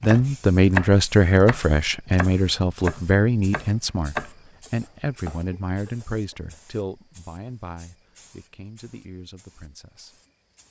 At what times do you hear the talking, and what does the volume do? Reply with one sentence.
The talking can be heard from 0.0 to 10.2 s, getting quieter.